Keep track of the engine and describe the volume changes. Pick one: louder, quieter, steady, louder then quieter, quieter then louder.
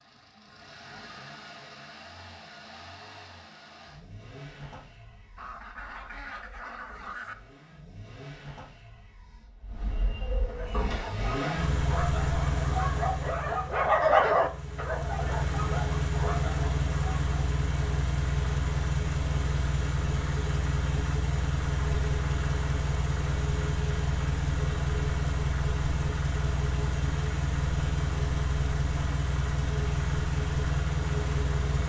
louder.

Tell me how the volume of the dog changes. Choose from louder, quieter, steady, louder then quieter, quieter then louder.
louder then quieter.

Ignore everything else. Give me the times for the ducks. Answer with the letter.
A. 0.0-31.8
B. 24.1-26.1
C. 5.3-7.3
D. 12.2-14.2
C.